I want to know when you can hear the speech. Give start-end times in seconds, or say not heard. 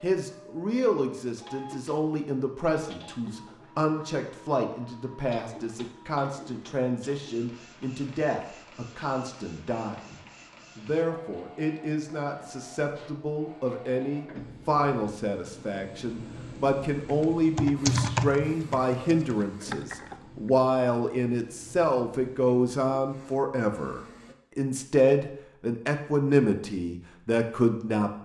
0.0-28.2.